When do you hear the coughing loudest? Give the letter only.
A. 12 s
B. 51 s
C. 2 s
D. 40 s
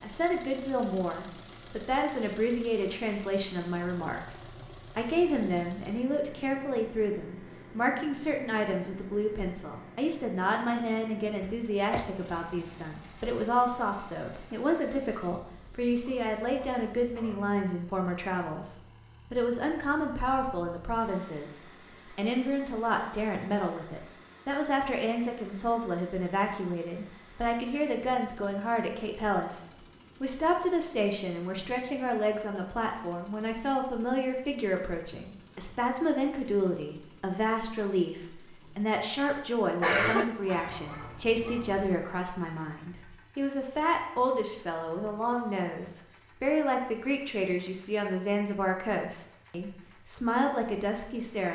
D.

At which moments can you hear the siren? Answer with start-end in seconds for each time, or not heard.
not heard.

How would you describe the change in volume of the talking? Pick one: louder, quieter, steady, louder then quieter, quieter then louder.
steady.